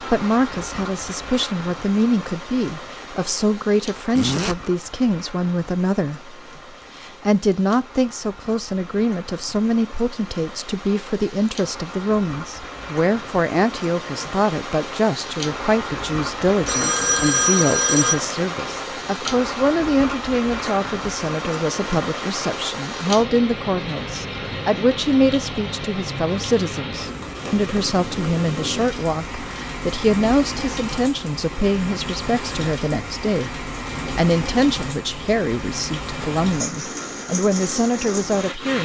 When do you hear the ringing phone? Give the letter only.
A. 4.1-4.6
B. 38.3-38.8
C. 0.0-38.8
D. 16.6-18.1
D.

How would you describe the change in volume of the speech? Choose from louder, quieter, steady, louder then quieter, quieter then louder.
steady.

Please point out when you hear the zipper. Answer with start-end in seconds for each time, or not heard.
4.1-4.6.